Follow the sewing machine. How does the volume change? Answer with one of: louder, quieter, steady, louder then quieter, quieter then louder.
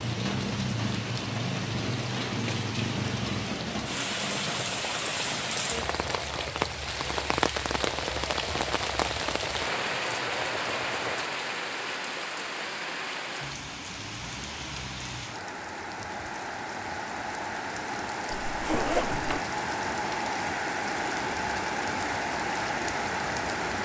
steady.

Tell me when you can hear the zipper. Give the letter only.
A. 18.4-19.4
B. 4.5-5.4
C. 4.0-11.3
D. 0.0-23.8
A.